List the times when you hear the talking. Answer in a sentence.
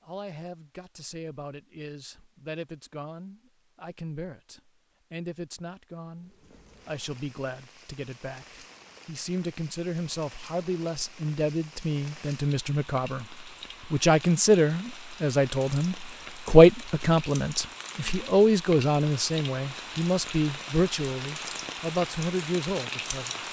The talking can be heard from 0.0 to 23.4 s.